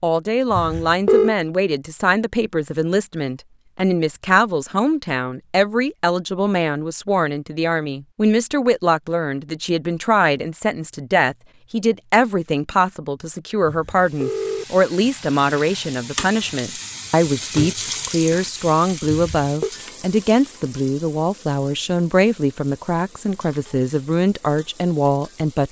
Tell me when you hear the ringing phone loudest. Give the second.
1 s.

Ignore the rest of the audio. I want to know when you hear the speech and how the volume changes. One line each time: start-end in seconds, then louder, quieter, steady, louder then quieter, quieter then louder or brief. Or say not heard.
0.0-25.6 steady.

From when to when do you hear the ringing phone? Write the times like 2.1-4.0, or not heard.
0.5-1.4, 13.7-14.7, 19.1-19.7.